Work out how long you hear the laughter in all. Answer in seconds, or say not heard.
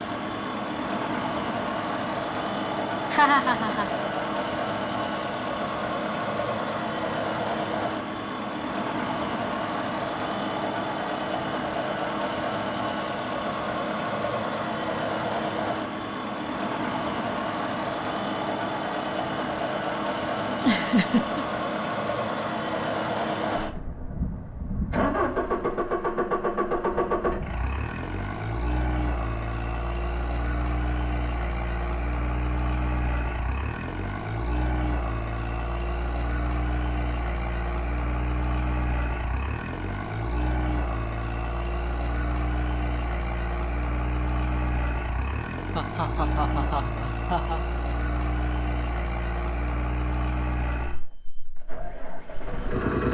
4 s.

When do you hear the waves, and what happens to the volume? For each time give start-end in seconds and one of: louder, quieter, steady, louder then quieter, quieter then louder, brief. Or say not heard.
not heard.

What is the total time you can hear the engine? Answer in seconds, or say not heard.
53 s.